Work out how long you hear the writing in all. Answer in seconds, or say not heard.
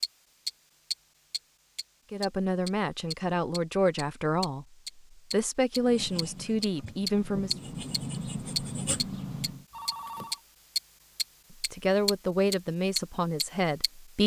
4 s.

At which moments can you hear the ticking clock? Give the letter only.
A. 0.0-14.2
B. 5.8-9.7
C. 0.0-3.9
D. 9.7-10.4
A.